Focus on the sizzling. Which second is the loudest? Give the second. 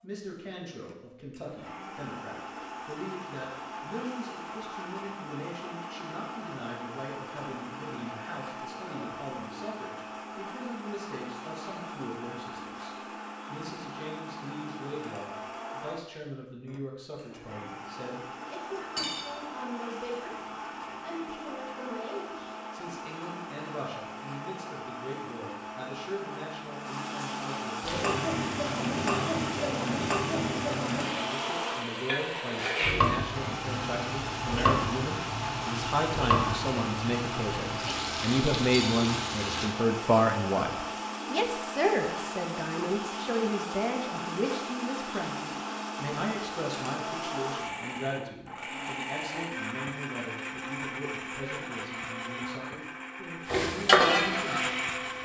54 s.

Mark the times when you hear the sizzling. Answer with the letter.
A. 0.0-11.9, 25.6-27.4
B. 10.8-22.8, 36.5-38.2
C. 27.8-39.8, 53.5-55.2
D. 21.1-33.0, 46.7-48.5
C.